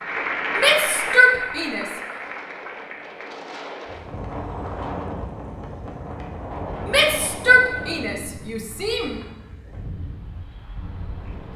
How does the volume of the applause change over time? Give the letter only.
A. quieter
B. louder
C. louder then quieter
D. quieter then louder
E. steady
A.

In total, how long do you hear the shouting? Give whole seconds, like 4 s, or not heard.
4 s.